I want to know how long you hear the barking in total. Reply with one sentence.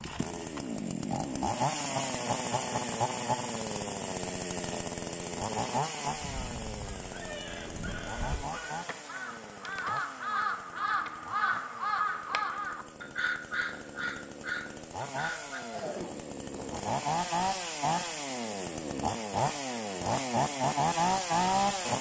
You can't hear the barking here.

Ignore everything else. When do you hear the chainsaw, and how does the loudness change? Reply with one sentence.
You can hear the chainsaw from 0.0 to 21.9 s, getting quieter then louder.